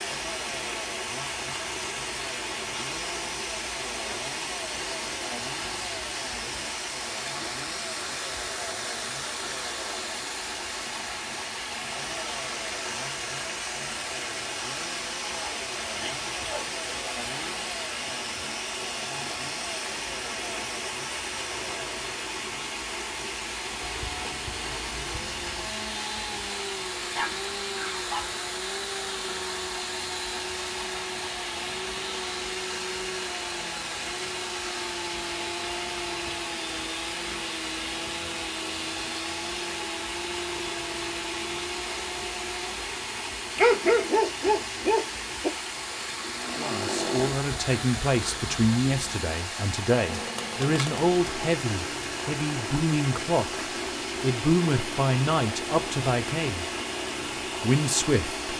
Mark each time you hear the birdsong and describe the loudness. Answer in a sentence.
The birdsong can't be heard in this clip.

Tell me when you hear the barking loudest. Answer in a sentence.
The loudest moment of the barking is at 44 seconds.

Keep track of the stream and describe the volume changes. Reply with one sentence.
The loudness of the stream stays about the same.